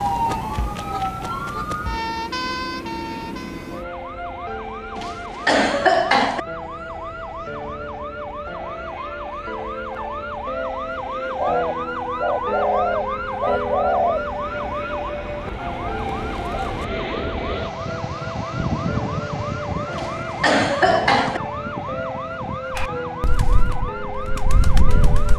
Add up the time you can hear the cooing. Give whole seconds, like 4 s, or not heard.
8 s.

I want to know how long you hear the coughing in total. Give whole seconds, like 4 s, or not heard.
3 s.